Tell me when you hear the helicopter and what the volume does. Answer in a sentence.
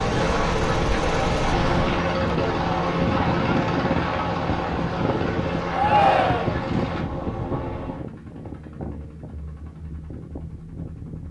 You can hear the helicopter from 0.0 to 11.2 s, getting quieter.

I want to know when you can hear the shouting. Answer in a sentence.
The shouting can be heard from 5.7 to 6.7 s.